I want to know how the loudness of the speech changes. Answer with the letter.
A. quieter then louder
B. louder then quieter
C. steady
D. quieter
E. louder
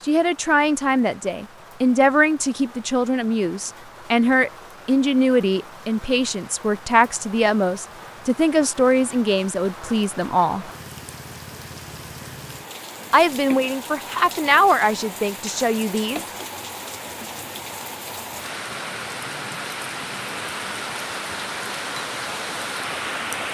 C.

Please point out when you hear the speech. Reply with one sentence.
You can hear the speech from 0.0 to 10.7 s and from 13.1 to 16.2 s.